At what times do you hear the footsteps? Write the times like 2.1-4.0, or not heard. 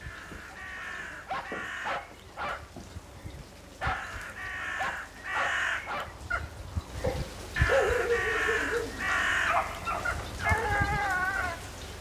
not heard.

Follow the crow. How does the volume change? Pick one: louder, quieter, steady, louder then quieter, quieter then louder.
louder.